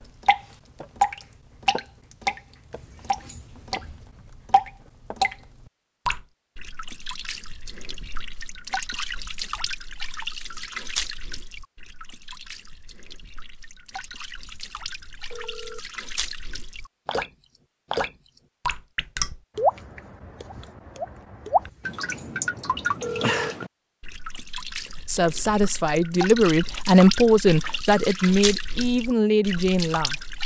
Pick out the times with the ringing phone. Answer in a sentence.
The ringing phone can be heard from 2.7 to 4.0 s, from 13.9 to 15.8 s and from 21.6 to 23.6 s.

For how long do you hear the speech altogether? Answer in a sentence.
The speech can be heard for 5 seconds in total.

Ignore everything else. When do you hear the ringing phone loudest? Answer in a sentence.
The loudest moment of the ringing phone is at 23 seconds.